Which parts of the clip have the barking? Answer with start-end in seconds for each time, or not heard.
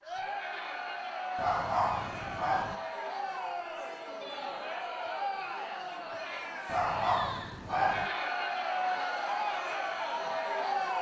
1.4-2.8, 6.7-8.1.